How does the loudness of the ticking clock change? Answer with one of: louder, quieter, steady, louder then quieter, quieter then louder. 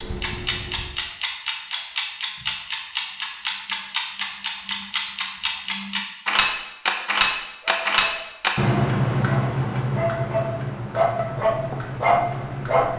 louder then quieter.